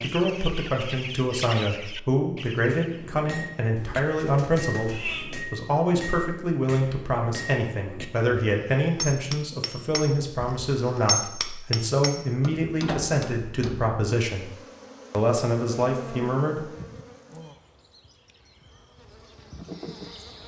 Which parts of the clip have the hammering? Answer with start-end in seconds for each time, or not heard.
2.6-13.9.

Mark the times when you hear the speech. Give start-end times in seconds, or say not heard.
0.0-14.5, 15.1-16.6.